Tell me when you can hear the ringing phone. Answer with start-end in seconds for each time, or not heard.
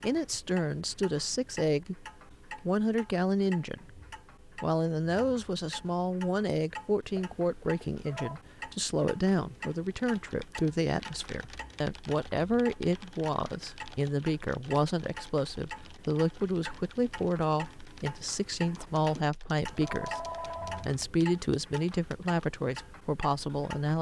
7.2-8.4, 18.8-20.9.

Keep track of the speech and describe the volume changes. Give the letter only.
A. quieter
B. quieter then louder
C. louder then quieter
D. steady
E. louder
D.